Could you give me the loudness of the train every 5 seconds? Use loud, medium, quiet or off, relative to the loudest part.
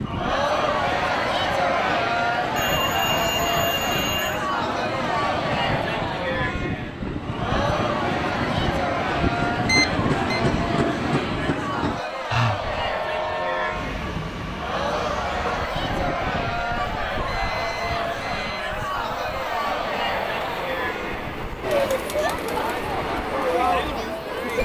medium, loud, loud, medium, medium.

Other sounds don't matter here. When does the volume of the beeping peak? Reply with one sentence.
The volume of the beeping peaks at 10 seconds.